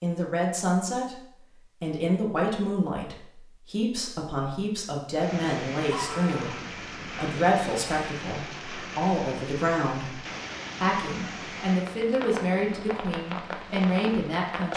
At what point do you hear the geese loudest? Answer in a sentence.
The loudest moment of the geese is at 6 seconds.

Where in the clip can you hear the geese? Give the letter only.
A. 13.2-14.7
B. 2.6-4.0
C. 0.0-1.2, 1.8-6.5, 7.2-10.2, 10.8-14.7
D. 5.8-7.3
D.